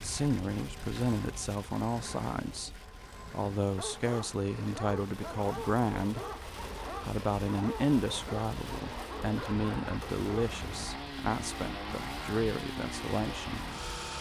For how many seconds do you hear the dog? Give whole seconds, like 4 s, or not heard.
7 s.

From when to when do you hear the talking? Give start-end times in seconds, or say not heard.
0.0-2.7, 3.3-6.2, 7.0-13.6.